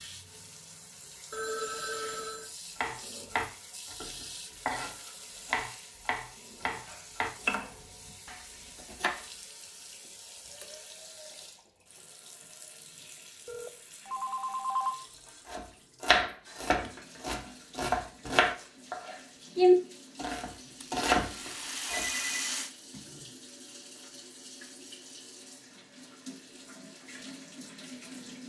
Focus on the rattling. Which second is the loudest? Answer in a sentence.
The loudest moment of the rattling is at 22 seconds.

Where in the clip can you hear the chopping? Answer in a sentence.
The chopping can be heard from 2.8 to 9.2 s and from 15.4 to 22.1 s.